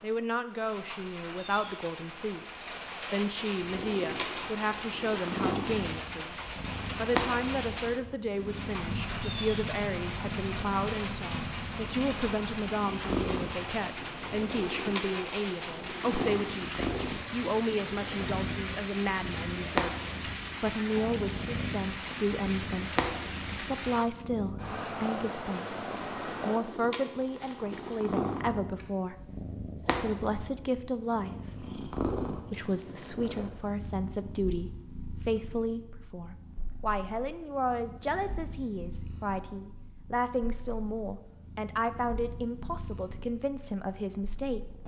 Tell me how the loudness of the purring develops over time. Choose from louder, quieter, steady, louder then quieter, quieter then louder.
quieter.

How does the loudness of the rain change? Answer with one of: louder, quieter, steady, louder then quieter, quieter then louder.
steady.